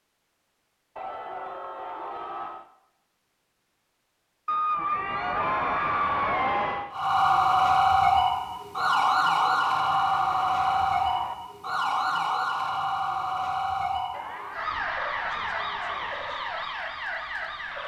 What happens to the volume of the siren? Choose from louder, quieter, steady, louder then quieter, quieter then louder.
quieter.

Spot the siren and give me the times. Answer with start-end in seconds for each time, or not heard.
6.9-17.8.